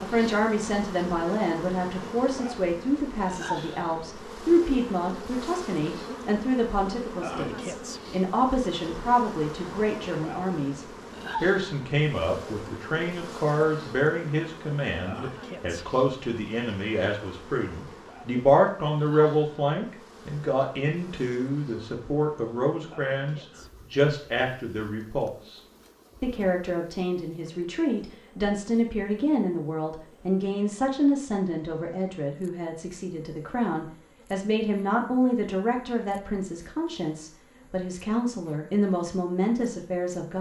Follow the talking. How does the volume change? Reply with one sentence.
The loudness of the talking stays about the same.